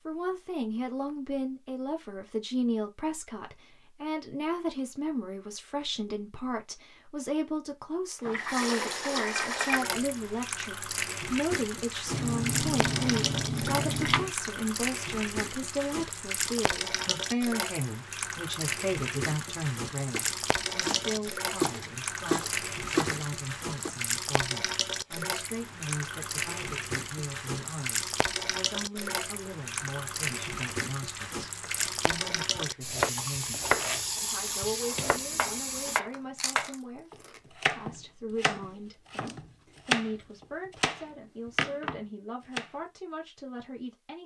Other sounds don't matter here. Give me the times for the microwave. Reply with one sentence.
You can't hear the microwave here.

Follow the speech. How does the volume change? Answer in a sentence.
The volume of the speech goes down.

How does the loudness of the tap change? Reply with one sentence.
The volume of the tap stays about the same.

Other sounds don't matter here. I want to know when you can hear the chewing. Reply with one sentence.
The chewing can be heard from 12.1 to 14.3 s and from 36.1 to 37.4 s.